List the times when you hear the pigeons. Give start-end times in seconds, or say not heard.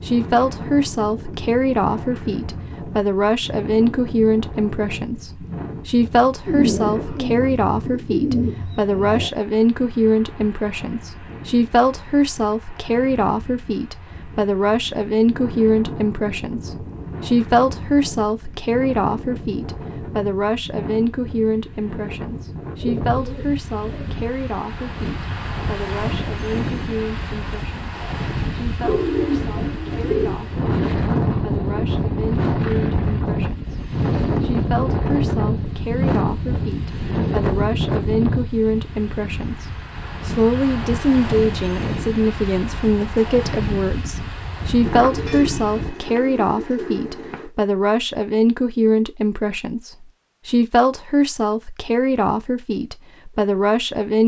6.5-9.3, 22.8-24.2, 28.8-30.4, 44.9-47.5.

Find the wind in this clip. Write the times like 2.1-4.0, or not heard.
0.0-46.0.